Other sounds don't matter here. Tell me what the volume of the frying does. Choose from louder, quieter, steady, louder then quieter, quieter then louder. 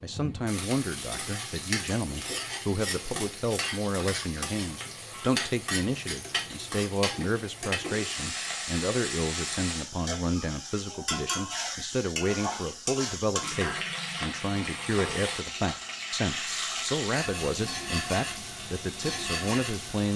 steady.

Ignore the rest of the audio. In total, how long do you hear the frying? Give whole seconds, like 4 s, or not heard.
20 s.